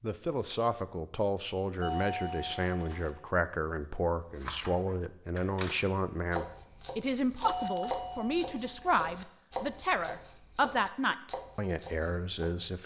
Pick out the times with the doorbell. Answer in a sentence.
You can hear the doorbell from 1.8 to 3.0 s and from 7.5 to 8.9 s.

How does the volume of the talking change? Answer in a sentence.
The loudness of the talking stays about the same.